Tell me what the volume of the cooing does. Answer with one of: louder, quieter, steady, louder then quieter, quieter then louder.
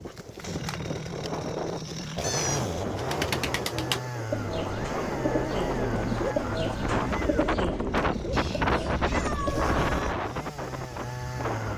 quieter.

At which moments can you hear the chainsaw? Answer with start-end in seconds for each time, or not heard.
0.0-11.7.